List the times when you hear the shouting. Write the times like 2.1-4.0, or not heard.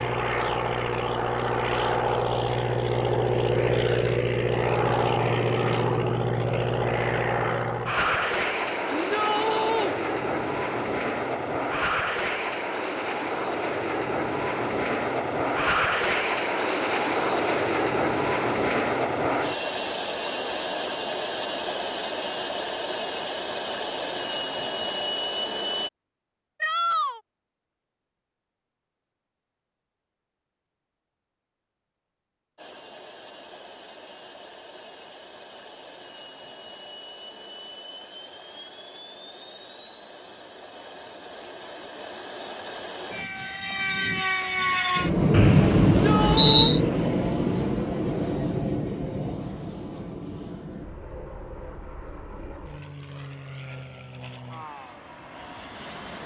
8.9-9.9, 26.6-27.2, 45.9-46.7.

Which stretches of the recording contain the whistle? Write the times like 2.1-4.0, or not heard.
45.3-46.8.